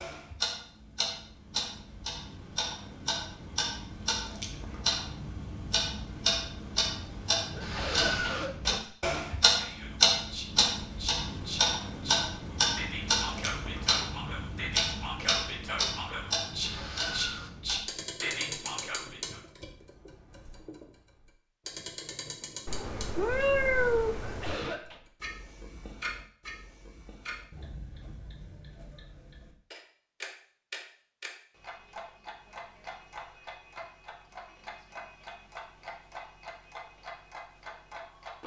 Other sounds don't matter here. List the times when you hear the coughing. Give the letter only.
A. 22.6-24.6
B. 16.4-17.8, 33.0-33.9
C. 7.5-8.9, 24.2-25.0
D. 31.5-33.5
C.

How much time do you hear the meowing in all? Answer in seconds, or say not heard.
2 s.